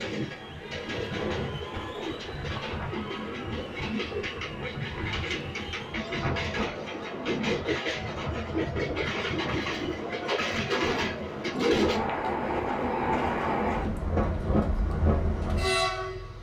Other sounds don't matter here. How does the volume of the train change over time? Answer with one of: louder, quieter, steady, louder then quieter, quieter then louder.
louder.